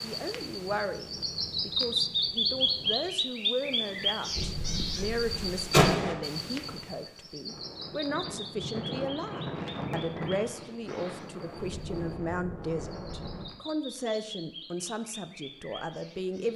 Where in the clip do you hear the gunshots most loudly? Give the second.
6 s.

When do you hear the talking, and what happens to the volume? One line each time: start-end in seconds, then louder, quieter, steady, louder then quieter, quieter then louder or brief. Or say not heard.
0.0-16.5 steady.